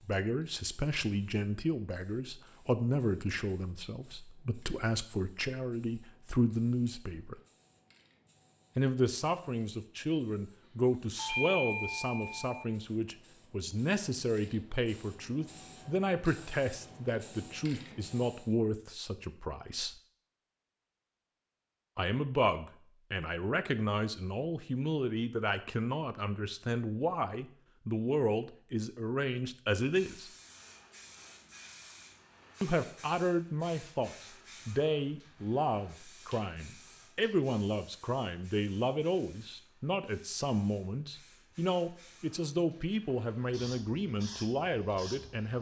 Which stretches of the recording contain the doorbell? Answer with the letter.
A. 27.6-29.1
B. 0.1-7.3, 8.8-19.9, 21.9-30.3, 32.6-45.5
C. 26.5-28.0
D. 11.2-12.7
D.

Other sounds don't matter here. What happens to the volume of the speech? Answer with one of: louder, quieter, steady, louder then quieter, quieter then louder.
steady.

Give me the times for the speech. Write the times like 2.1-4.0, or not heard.
0.1-7.3, 8.8-19.9, 21.9-30.3, 32.6-45.5.